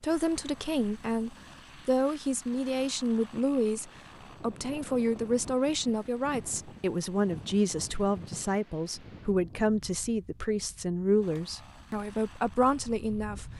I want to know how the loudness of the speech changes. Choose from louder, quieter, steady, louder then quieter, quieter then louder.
steady.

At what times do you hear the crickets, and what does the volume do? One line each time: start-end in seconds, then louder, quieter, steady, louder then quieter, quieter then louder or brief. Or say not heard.
not heard.